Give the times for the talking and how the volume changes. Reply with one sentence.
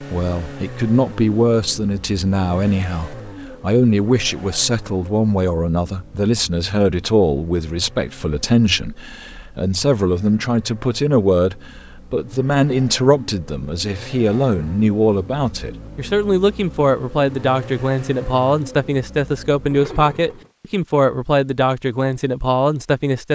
You can hear the talking from 0.0 to 23.3 s, at a steady volume.